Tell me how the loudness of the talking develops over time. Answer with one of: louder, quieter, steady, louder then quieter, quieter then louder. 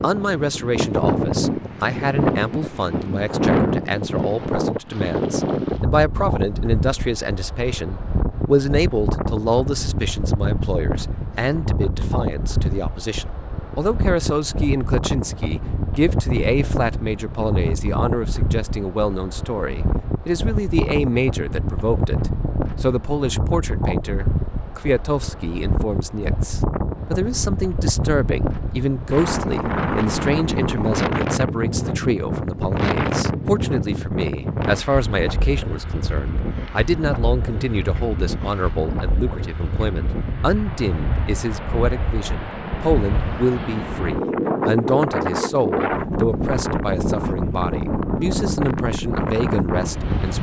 steady.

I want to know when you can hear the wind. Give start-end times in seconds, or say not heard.
0.0-50.3.